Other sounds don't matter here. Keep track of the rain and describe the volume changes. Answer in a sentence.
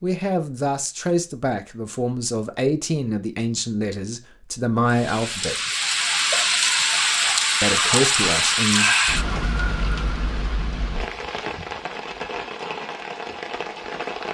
The loudness of the rain goes down.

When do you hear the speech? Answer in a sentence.
You can hear the speech from 0.0 to 5.7 s and from 7.6 to 8.9 s.